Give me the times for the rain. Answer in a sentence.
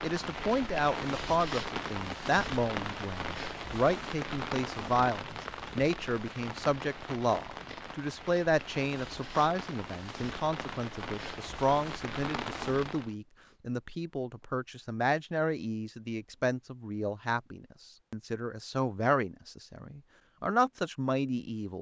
You can hear the rain from 0.0 to 13.2 s.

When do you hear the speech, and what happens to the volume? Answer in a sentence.
The speech can be heard from 0.0 to 21.7 s, at a steady volume.